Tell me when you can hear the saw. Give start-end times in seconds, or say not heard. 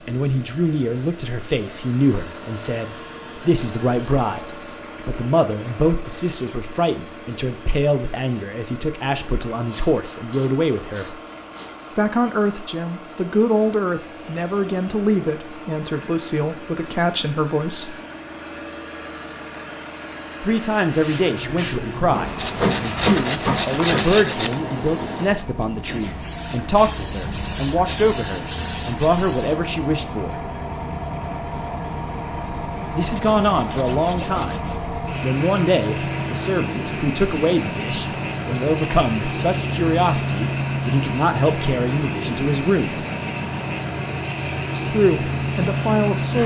9.7-11.9, 22.4-24.6, 33.1-34.9.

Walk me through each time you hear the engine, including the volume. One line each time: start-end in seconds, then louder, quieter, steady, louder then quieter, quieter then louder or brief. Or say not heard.
0.0-46.4 louder.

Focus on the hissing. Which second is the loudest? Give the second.
23 s.